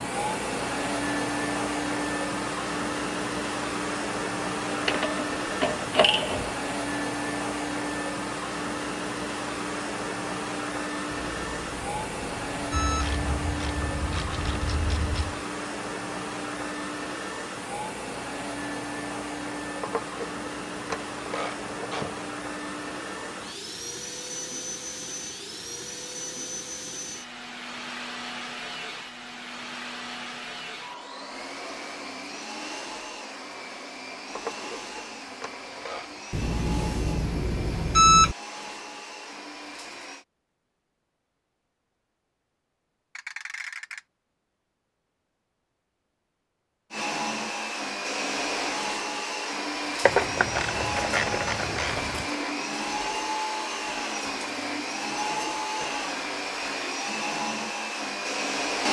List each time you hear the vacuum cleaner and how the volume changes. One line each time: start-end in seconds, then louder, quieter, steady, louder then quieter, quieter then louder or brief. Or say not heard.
0.0-40.2 quieter
46.9-58.8 steady.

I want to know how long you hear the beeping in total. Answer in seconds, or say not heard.
4 s.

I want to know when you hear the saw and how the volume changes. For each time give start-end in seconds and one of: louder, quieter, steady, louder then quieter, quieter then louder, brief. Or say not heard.
not heard.